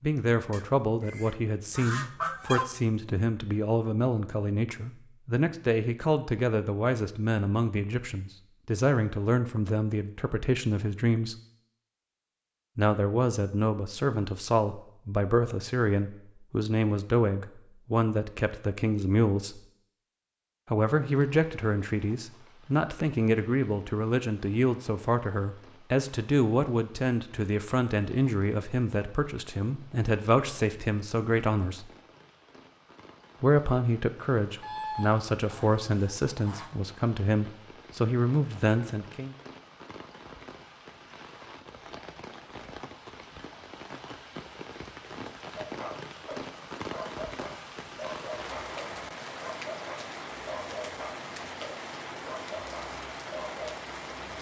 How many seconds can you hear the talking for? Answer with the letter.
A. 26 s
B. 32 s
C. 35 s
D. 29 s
C.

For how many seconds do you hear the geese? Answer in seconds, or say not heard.
5 s.